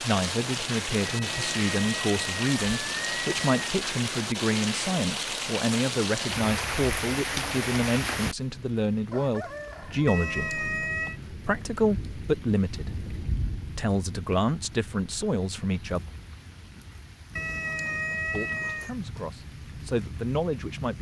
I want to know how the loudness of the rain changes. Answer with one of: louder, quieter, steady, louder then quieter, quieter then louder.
quieter.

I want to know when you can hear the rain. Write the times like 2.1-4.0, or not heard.
0.0-20.9.